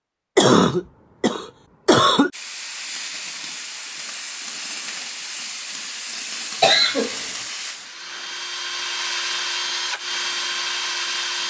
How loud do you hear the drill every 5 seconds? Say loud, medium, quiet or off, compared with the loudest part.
off, loud, loud.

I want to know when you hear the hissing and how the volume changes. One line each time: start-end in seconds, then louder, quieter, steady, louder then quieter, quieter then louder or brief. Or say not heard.
2.3-11.4 quieter.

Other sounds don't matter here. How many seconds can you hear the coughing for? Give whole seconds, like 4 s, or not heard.
3 s.